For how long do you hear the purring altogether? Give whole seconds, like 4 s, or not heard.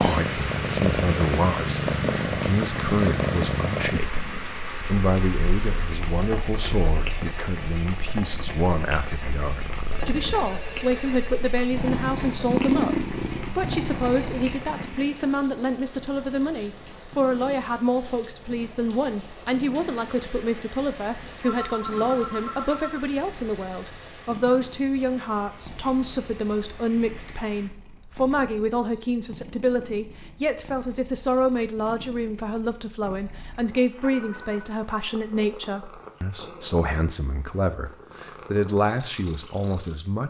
40 s.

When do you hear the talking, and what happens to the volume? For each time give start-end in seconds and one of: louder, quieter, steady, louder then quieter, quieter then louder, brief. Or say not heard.
0.0-40.2 steady.